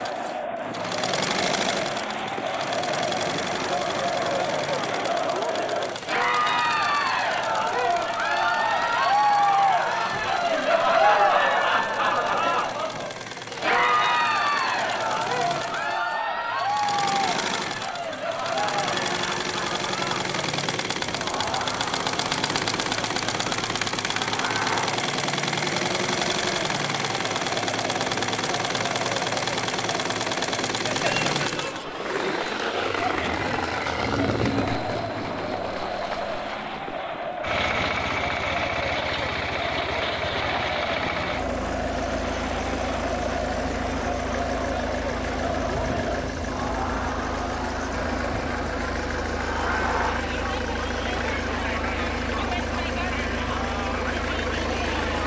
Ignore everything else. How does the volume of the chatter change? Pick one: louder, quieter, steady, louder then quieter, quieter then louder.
quieter.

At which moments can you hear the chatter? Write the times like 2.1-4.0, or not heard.
0.0-55.2.